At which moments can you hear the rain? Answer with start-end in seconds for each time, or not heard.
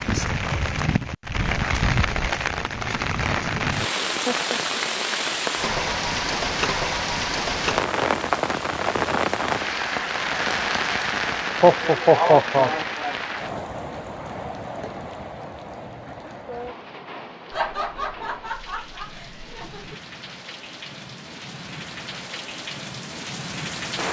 0.0-24.0.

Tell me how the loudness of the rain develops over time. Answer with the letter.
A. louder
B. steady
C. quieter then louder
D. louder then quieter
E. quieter
E.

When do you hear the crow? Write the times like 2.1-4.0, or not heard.
not heard.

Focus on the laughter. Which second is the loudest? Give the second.
12 s.